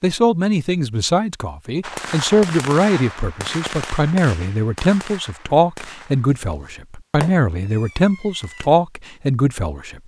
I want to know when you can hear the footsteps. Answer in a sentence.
You can't hear the footsteps here.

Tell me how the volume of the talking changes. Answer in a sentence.
The loudness of the talking stays about the same.